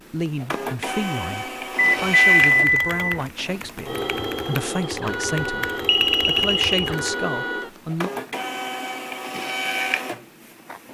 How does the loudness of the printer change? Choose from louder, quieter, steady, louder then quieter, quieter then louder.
steady.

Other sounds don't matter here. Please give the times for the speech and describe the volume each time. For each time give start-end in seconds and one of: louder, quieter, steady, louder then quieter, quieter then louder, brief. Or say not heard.
0.1-8.1 steady.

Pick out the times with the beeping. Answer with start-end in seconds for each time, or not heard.
1.8-3.2, 5.8-6.9.